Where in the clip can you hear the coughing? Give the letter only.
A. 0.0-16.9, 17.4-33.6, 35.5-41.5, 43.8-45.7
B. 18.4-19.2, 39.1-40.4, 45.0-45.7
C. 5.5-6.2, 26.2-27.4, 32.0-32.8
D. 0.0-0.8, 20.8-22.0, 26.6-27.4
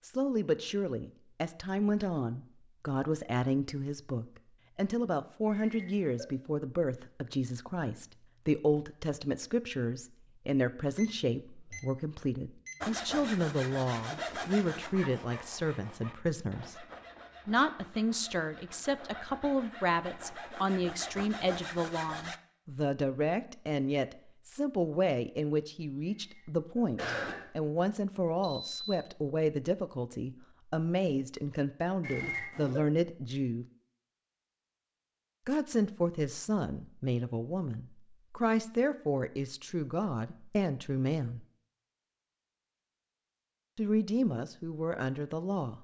C.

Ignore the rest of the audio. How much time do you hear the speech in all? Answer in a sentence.
The speech can be heard for 41 seconds in total.